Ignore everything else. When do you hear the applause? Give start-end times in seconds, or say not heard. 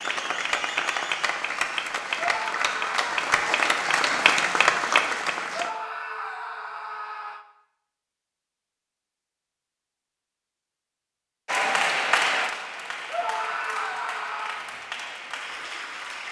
0.0-5.7, 11.4-16.2.